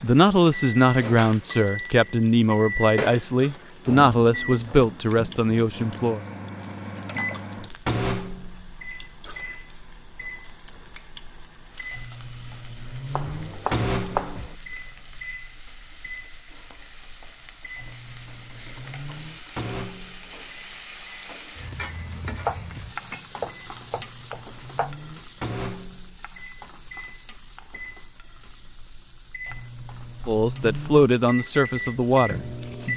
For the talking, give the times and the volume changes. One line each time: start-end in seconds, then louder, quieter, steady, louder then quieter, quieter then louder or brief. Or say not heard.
0.0-6.2 steady
30.2-32.9 brief.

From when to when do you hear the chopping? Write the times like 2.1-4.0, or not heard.
13.1-14.6, 22.4-24.9.